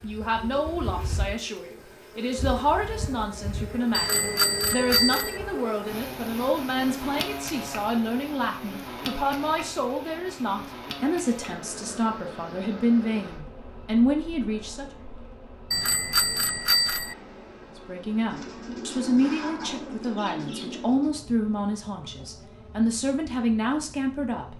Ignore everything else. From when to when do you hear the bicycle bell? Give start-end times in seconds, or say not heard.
3.9-5.4, 15.7-17.1.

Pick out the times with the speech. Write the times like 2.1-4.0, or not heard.
0.0-14.8, 17.9-24.5.